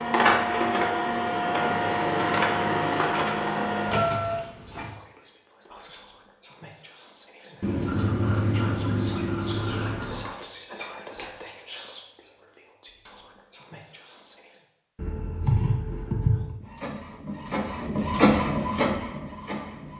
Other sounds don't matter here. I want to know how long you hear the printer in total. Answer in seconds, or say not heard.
8 s.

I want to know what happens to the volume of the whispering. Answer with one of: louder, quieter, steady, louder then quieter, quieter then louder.
louder then quieter.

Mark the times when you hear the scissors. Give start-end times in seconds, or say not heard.
2.1-2.9, 7.6-10.2, 14.9-16.6.